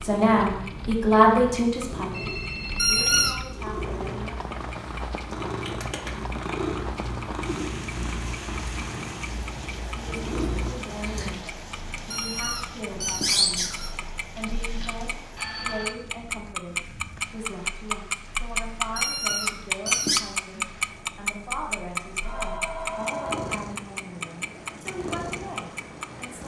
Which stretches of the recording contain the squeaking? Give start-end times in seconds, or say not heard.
2.8-3.4, 12.1-14.1, 18.9-20.2.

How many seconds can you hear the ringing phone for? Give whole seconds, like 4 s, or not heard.
4 s.